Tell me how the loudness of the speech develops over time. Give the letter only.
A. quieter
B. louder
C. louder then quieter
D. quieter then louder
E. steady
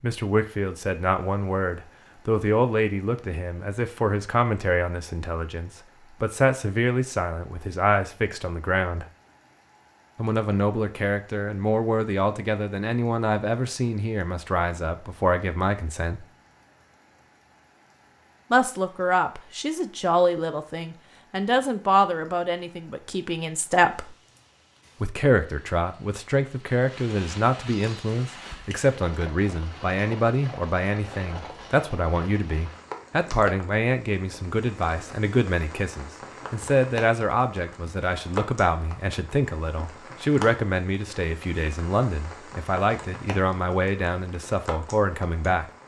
E.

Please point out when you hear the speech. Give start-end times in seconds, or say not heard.
0.0-9.1, 10.2-16.2, 18.5-24.1, 25.0-45.6.